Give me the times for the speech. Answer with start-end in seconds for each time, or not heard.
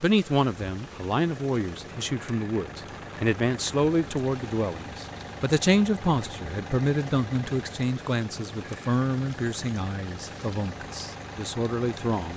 0.0-12.3.